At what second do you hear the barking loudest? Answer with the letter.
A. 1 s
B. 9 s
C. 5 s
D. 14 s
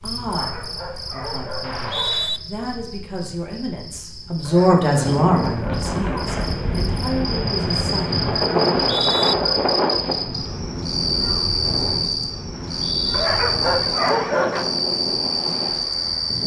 D.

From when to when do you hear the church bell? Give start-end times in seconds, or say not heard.
not heard.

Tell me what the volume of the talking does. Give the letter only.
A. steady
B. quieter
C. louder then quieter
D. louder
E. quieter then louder
C.